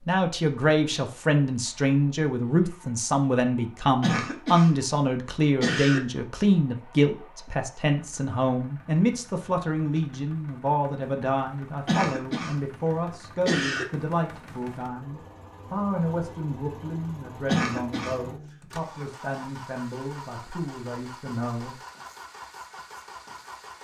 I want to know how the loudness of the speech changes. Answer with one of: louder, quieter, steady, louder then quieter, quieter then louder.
quieter.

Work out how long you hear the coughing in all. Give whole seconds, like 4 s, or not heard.
3 s.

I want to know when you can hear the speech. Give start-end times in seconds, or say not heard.
0.1-21.8.